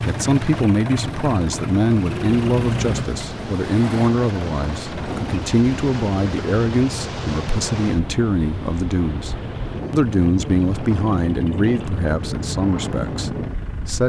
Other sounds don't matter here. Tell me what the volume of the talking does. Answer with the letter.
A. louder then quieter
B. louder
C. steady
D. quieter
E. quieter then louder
C.